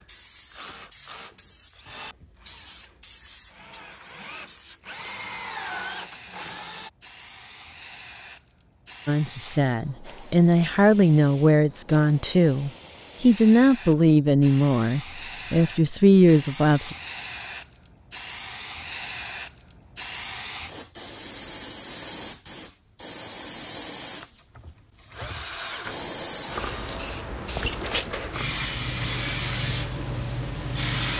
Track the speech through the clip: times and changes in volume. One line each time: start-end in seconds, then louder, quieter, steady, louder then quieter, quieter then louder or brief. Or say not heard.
9.1-16.9 steady.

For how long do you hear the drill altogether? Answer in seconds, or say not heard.
10 s.